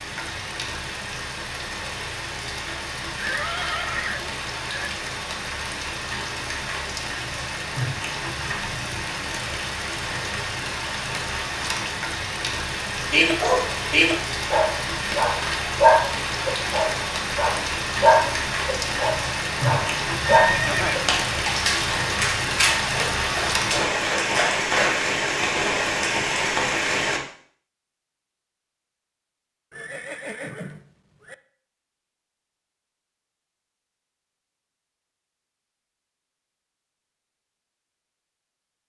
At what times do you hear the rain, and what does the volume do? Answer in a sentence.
The rain can be heard from 0.0 to 27.2 s, getting louder.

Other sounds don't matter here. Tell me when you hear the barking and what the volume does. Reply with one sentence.
The barking can be heard from 13.1 to 25.0 s, getting quieter.